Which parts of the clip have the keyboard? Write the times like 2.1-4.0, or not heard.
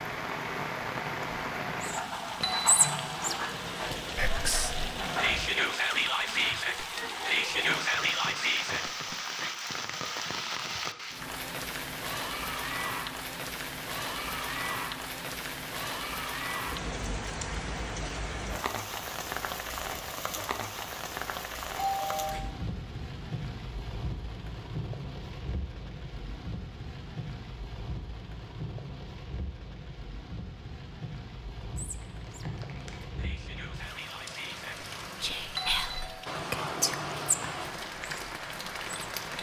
not heard.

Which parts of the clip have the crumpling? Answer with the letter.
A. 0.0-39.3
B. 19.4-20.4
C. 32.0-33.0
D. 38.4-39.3
C.